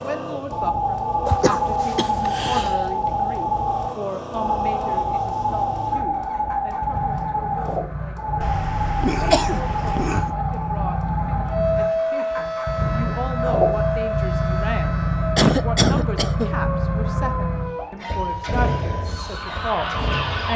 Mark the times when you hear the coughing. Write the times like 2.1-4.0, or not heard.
1.2-2.8, 8.4-10.3, 15.3-16.6.